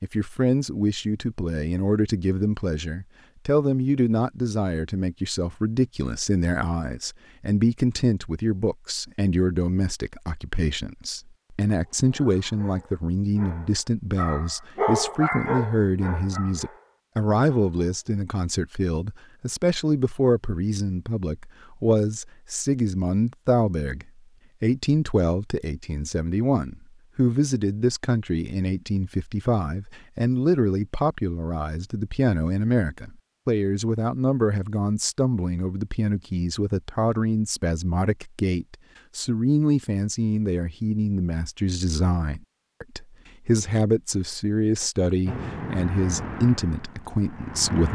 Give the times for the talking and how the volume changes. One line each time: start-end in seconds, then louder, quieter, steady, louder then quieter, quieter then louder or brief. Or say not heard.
0.0-47.9 steady.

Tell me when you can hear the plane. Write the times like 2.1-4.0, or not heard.
45.2-47.9.